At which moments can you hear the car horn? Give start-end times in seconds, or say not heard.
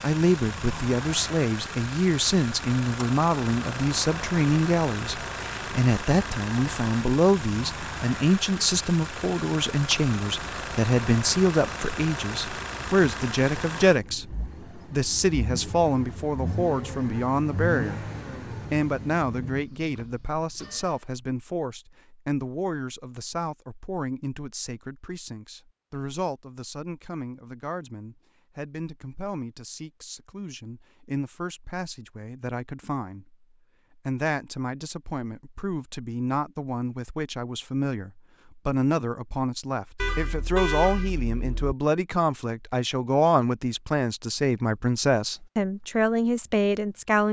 40.0-41.8.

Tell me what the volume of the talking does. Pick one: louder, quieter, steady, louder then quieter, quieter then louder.
quieter then louder.